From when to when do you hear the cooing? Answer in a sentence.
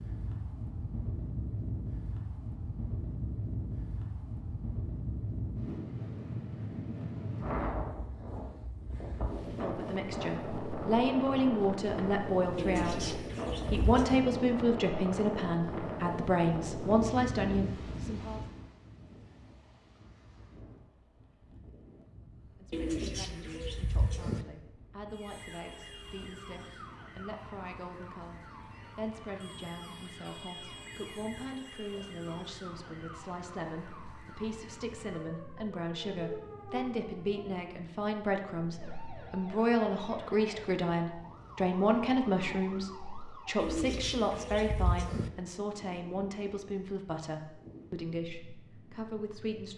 You can hear the cooing from 12.6 to 14.2 s, from 22.7 to 24.4 s and from 43.5 to 45.3 s.